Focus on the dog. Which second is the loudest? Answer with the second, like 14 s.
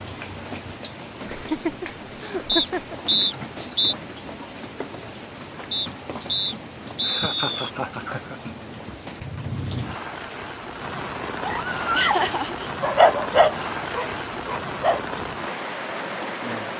13 s.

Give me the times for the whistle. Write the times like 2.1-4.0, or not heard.
2.5-4.0, 5.7-7.7, 11.5-12.3.